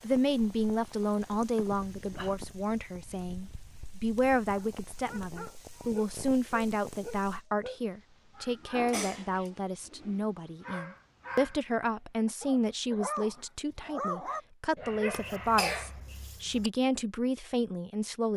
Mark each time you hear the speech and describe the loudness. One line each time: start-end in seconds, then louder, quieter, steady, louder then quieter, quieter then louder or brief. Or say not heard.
0.0-18.3 steady.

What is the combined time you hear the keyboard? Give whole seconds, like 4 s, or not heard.
not heard.